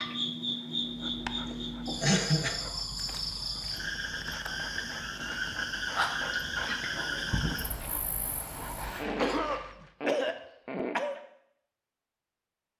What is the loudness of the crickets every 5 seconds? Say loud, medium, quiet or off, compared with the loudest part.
loud, loud, off.